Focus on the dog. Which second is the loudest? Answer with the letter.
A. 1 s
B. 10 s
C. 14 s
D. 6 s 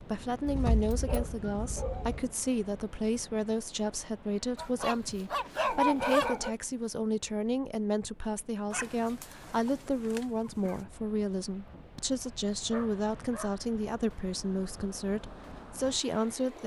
D.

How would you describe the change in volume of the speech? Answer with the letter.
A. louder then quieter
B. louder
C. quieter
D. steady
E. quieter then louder
D.